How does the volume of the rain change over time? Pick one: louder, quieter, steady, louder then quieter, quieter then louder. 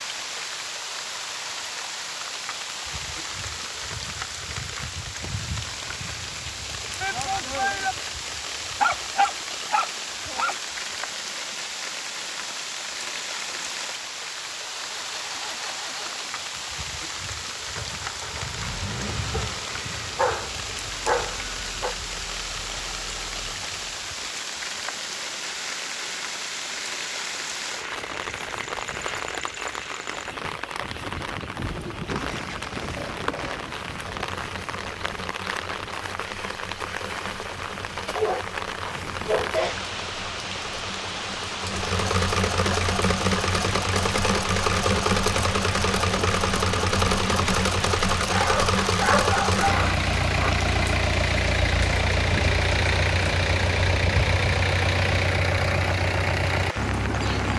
steady.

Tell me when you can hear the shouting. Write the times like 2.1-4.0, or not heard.
7.0-8.0.